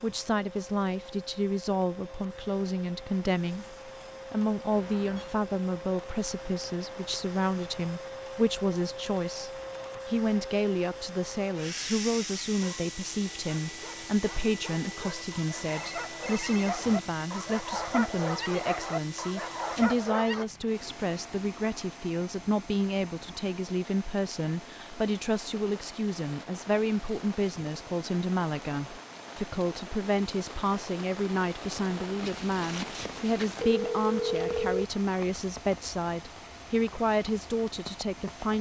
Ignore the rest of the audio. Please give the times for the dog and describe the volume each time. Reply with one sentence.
The dog can be heard from 12.5 to 20.4 s, getting louder.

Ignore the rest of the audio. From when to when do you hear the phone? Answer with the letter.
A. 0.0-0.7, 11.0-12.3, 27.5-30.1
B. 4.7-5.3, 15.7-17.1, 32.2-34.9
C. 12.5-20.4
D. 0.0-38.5
B.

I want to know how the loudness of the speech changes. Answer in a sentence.
The volume of the speech stays about the same.